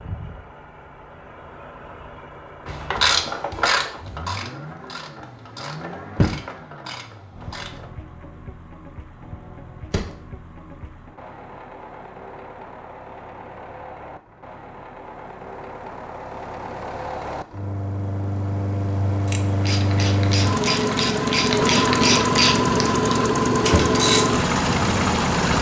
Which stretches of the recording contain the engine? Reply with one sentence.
You can hear the engine from 0.0 to 25.5 s.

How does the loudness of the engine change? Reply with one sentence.
The loudness of the engine goes up.